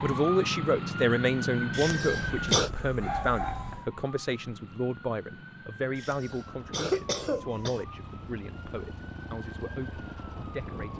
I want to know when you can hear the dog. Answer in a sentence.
The dog can be heard from 2.1 to 3.9 s.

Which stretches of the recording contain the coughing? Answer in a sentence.
The coughing can be heard from 1.7 to 2.7 s and from 6.0 to 7.8 s.